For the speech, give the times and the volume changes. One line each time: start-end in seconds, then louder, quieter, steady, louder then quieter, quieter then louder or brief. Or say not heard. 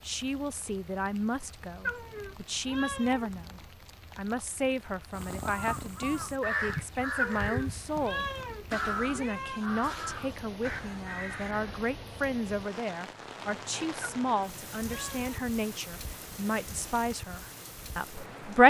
0.0-18.6 steady.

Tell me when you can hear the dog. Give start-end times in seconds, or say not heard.
not heard.